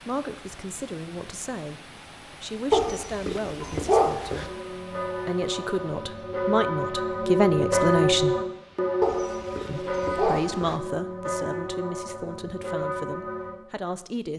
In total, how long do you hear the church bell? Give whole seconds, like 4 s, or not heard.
9 s.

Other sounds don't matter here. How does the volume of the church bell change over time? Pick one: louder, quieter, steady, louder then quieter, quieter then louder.
louder then quieter.